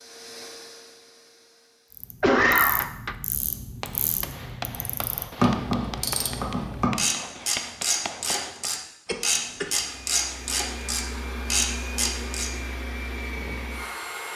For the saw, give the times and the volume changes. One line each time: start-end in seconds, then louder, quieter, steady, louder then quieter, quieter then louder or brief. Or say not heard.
not heard.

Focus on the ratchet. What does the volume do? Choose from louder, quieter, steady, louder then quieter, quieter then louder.
louder.